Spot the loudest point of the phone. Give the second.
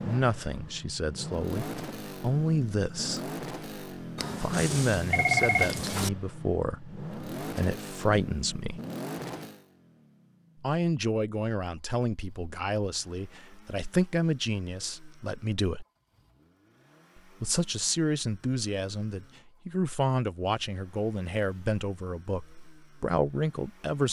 5 s.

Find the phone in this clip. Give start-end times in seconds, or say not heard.
4.2-6.1.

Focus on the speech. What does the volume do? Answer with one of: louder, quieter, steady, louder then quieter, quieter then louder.
steady.